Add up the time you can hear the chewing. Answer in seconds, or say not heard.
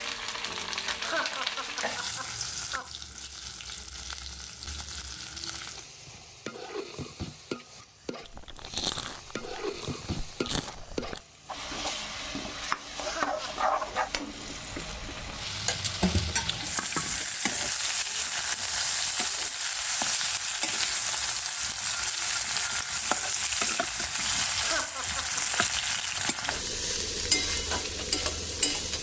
3 s.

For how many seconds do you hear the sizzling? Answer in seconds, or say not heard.
29 s.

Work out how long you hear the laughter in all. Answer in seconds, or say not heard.
4 s.